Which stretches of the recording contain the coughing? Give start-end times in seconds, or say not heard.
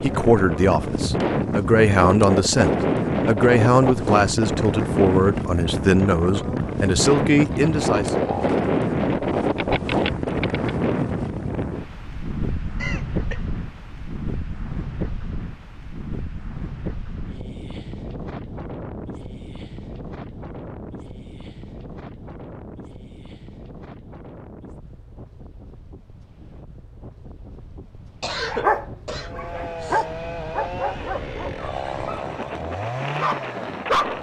12.8-13.4, 28.2-30.1.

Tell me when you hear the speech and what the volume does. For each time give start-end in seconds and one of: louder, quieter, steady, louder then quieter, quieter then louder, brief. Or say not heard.
0.0-8.2 steady.